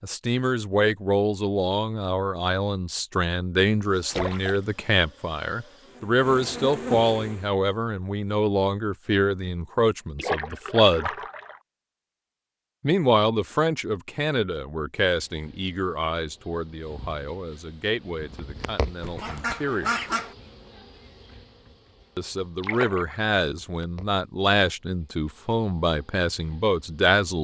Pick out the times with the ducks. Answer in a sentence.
You can hear the ducks from 19.0 to 20.4 s.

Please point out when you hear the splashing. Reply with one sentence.
You can hear the splashing from 4.1 to 4.6 s, from 10.2 to 11.6 s and from 22.6 to 23.1 s.